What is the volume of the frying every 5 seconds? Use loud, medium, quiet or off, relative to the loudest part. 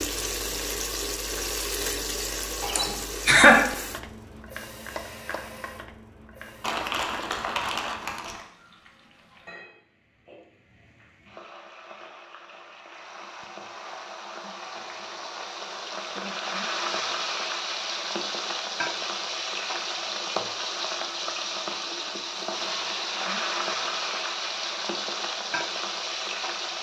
loud, quiet, quiet, loud, loud, loud.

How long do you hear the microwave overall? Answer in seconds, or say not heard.
not heard.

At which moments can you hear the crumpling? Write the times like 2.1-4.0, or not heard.
6.6-8.4.